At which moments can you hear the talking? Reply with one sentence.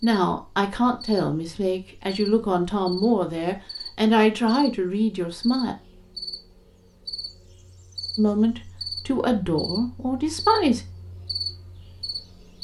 You can hear the talking from 0.0 to 5.8 s and from 8.2 to 10.8 s.